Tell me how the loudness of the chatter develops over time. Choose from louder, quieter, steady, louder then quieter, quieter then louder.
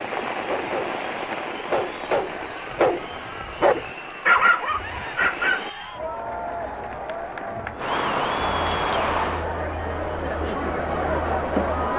louder.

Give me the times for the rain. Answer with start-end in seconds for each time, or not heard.
0.0-9.5.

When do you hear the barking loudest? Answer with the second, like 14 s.
4 s.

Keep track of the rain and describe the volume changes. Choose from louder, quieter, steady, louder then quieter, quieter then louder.
quieter then louder.